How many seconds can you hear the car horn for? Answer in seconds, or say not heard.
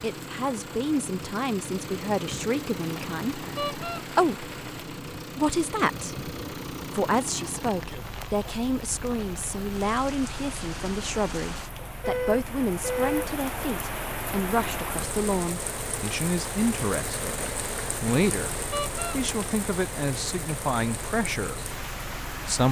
2 s.